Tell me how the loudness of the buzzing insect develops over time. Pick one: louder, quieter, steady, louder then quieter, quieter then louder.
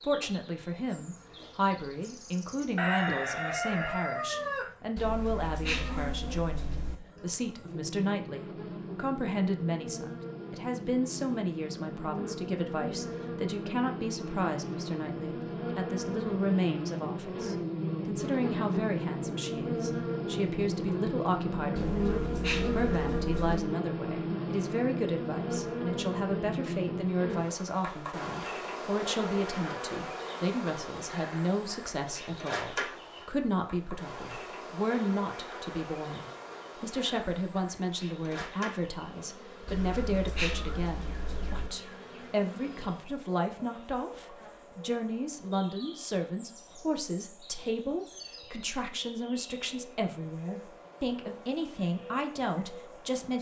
louder then quieter.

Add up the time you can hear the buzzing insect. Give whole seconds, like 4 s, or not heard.
53 s.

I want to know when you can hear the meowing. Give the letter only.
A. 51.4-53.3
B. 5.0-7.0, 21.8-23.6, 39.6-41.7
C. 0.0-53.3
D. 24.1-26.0
B.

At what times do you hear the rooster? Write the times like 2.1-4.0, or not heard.
2.8-4.7.